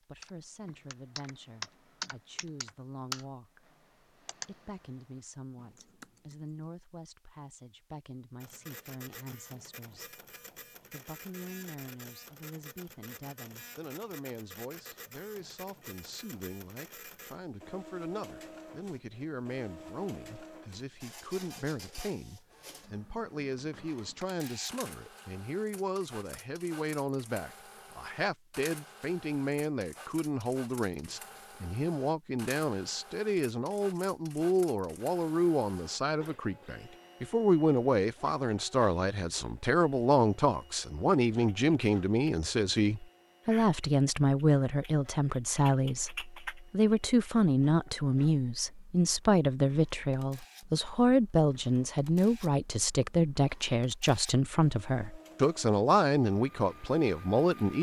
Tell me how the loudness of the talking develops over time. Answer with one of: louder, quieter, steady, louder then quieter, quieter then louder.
louder.